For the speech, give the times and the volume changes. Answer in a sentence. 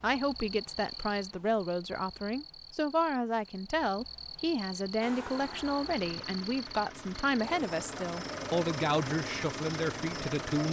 You can hear the speech from 0.0 to 10.6 s, at a steady volume.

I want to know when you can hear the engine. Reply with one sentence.
The engine can be heard from 5.0 to 10.6 s.